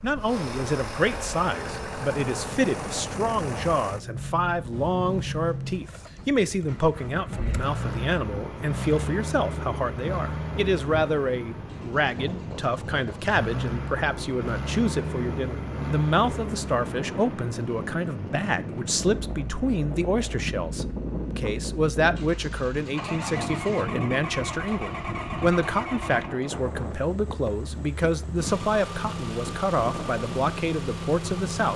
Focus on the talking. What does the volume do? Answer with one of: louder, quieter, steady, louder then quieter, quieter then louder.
steady.